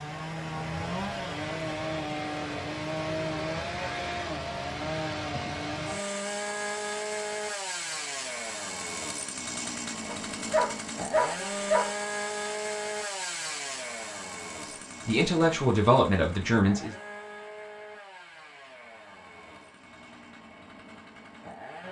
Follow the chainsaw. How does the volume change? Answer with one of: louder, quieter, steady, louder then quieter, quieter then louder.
quieter.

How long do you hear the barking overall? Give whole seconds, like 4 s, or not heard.
2 s.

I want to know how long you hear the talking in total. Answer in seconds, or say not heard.
2 s.